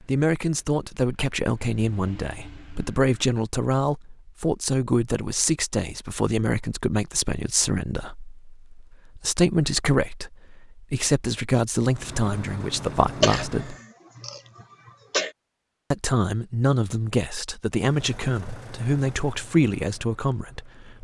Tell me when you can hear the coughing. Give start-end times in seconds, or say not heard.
13.1-15.3.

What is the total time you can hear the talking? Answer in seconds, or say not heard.
19 s.